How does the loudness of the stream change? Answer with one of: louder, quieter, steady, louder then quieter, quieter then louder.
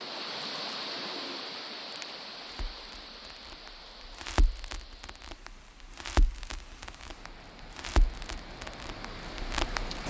quieter then louder.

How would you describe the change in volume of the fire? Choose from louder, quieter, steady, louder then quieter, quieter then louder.
quieter then louder.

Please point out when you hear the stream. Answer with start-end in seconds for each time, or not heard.
0.0-10.0.